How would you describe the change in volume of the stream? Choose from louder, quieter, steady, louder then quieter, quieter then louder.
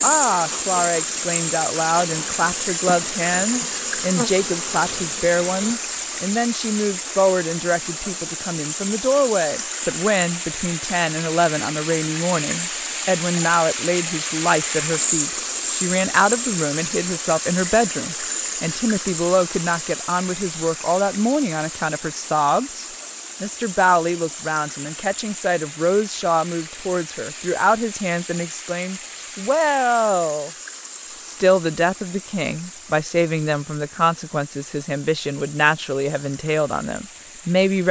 quieter.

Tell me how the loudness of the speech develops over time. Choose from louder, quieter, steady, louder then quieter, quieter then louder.
steady.